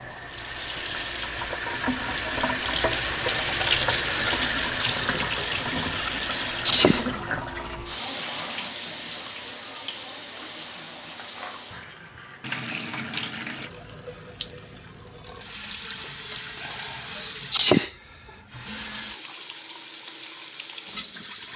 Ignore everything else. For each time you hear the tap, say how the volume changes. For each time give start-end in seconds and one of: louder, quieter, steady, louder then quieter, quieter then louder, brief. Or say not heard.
0.0-21.5 quieter.